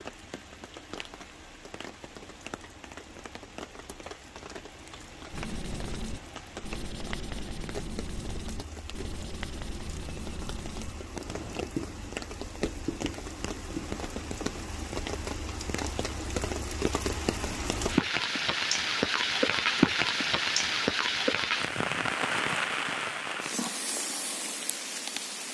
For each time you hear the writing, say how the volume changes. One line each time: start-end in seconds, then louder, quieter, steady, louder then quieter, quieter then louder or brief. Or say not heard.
5.3-14.2 steady.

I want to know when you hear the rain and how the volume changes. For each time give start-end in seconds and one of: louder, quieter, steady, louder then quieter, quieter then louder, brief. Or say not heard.
0.0-25.5 louder.